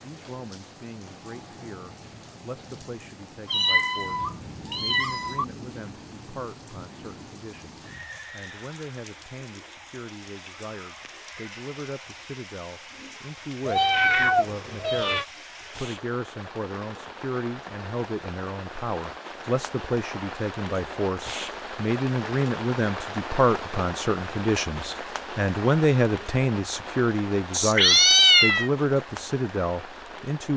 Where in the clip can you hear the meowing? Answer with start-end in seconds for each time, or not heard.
3.5-5.5, 13.7-15.2, 27.5-28.7.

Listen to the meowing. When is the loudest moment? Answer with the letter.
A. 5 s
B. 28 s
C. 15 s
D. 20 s
B.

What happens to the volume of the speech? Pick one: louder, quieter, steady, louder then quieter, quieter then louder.
louder.